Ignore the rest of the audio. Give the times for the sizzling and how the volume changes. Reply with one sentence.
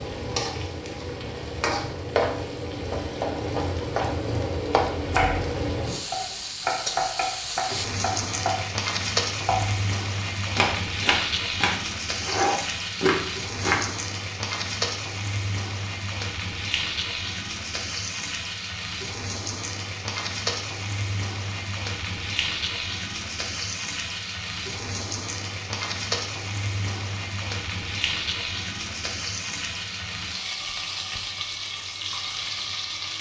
You can hear the sizzling from 0.0 to 33.1 s, at a steady volume.